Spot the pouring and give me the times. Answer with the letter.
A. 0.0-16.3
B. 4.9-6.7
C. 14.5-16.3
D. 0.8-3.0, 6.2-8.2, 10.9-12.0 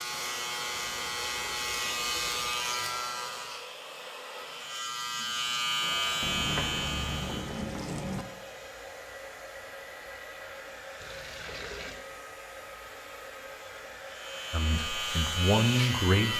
D.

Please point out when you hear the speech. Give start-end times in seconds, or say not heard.
14.5-16.3.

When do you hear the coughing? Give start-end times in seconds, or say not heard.
not heard.